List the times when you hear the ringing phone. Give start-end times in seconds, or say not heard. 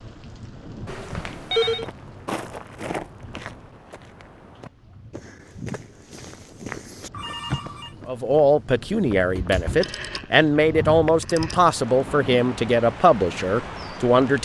0.8-1.9, 7.1-7.9, 9.8-10.2, 11.1-11.6.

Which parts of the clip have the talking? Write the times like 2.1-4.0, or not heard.
8.1-14.4.